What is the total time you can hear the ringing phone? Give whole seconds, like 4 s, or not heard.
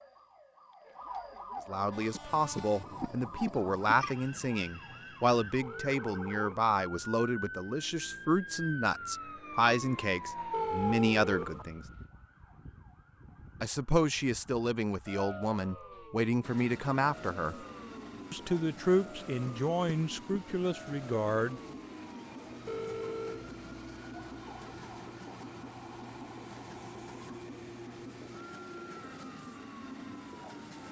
3 s.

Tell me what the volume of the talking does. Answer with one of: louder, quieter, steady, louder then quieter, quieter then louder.
steady.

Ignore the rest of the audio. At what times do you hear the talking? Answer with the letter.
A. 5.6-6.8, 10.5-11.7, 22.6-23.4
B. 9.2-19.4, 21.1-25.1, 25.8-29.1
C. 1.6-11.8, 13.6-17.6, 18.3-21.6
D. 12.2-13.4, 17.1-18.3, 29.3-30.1
C.